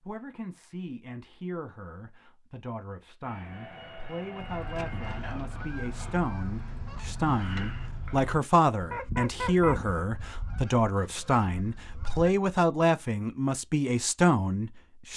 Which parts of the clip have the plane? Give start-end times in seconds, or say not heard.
3.2-5.2.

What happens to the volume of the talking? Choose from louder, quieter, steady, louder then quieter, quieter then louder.
louder.